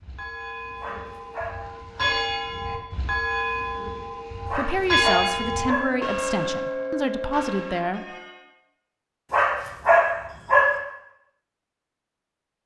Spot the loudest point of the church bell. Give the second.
5 s.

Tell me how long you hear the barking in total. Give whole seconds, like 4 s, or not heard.
4 s.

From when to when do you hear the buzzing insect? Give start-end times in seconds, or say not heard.
not heard.